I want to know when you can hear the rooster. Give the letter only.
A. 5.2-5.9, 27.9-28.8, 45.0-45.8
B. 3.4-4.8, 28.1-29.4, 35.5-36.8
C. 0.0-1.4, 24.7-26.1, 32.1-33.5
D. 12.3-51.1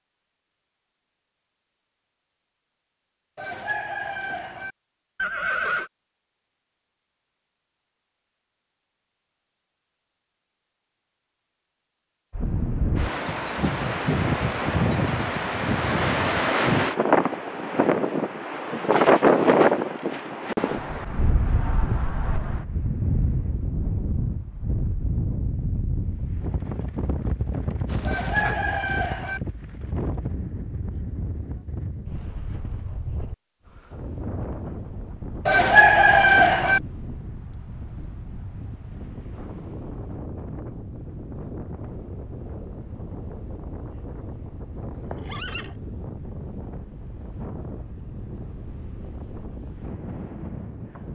B.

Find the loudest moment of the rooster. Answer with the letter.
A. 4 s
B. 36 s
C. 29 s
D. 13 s
B.